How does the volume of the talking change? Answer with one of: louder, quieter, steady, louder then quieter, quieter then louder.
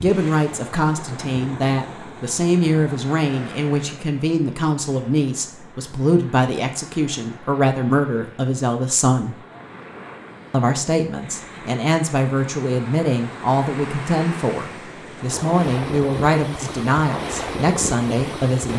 steady.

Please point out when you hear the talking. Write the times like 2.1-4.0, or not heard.
0.0-9.4, 10.5-18.7.